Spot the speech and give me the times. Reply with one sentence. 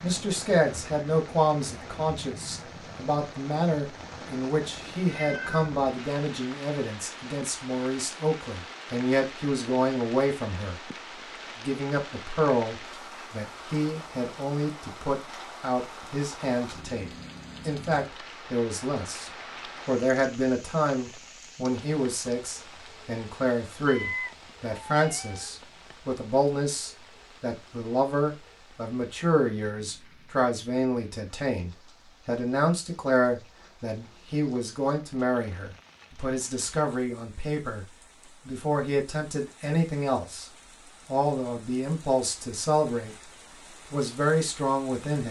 You can hear the speech from 0.0 to 10.9 s, from 11.6 to 17.1 s, from 17.6 to 37.9 s, from 38.5 to 40.5 s, from 41.0 to 43.3 s and from 43.9 to 45.2 s.